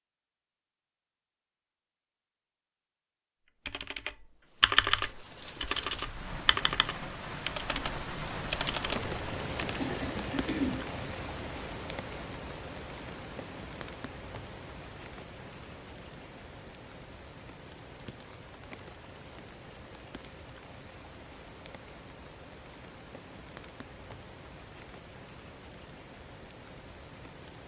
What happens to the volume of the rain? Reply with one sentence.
The loudness of the rain goes down.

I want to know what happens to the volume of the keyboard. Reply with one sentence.
The volume of the keyboard goes down.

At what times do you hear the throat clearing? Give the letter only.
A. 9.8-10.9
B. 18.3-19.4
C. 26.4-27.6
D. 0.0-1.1
A.